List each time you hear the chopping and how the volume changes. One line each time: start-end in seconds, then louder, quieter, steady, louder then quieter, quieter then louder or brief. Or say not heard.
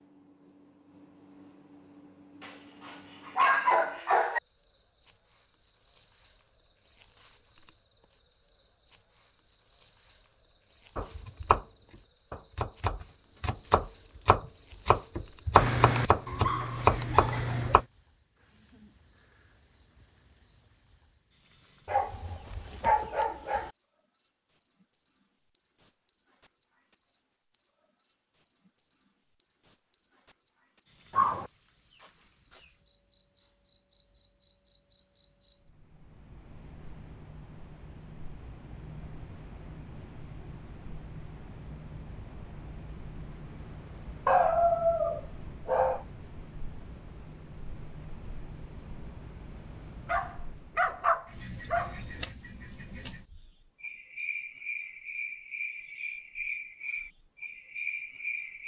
10.9-17.9 louder.